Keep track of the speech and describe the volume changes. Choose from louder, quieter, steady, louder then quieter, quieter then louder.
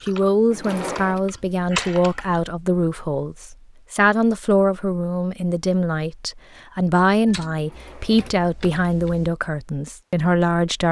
steady.